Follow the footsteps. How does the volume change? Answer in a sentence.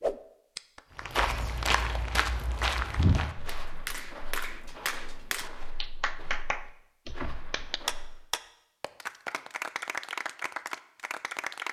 The volume of the footsteps goes down.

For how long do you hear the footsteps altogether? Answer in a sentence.
The footsteps can be heard for 7 seconds in total.